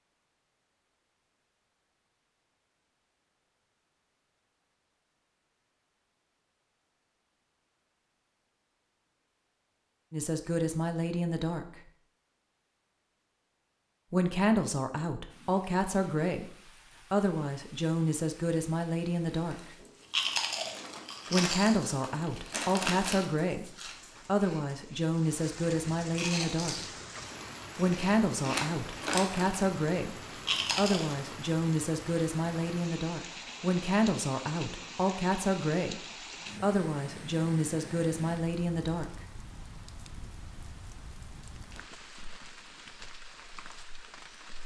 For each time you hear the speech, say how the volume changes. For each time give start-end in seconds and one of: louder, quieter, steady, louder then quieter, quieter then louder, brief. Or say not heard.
10.1-11.8 brief
14.1-19.8 steady
21.3-26.8 steady
27.8-39.2 steady.